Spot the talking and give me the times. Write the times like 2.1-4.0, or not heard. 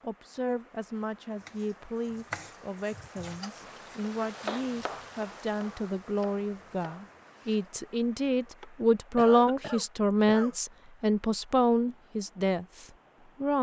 0.0-13.5.